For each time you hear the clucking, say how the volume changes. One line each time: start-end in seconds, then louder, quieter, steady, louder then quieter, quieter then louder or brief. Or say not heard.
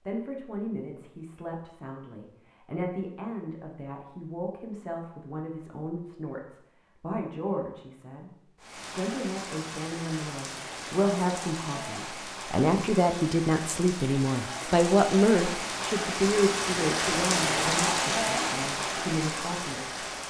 not heard.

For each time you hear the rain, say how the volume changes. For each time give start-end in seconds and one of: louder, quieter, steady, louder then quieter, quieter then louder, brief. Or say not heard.
8.6-20.2 louder.